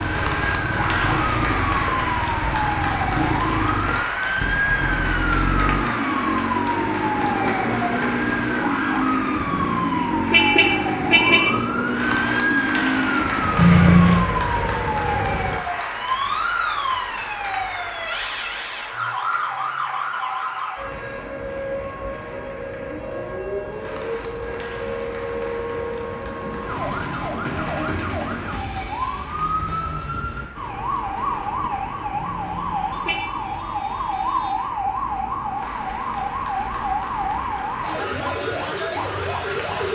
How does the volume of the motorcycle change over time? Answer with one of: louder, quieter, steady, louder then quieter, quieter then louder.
steady.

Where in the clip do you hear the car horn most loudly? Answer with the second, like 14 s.
14 s.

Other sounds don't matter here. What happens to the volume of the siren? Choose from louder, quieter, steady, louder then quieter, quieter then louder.
steady.